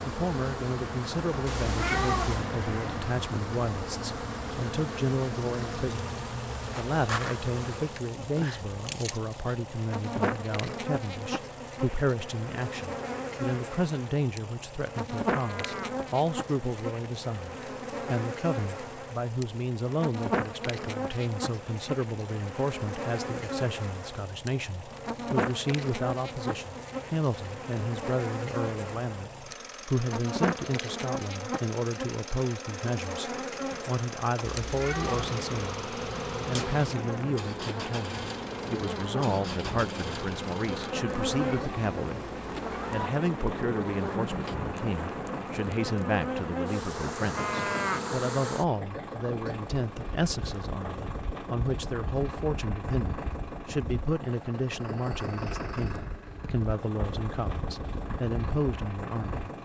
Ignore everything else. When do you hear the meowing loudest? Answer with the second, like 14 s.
2 s.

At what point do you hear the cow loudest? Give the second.
48 s.